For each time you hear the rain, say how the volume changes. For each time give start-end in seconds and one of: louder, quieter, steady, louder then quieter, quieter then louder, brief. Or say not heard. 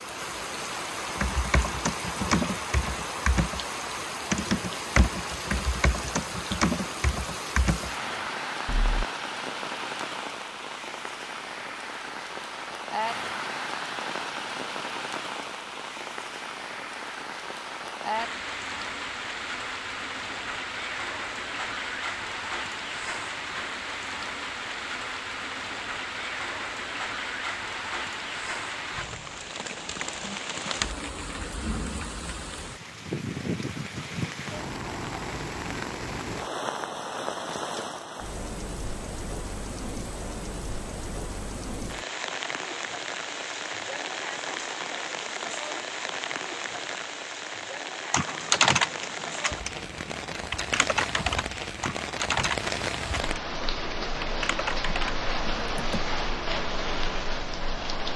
0.0-58.1 steady.